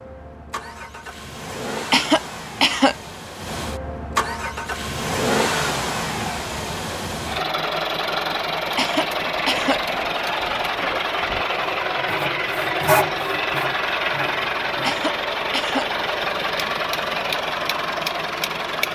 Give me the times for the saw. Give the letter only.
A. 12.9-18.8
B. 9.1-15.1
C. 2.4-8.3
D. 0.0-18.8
B.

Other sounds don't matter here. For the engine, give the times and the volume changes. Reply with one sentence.
The engine can be heard from 0.0 to 18.8 s, getting louder.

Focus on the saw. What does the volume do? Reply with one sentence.
The loudness of the saw goes up, then down.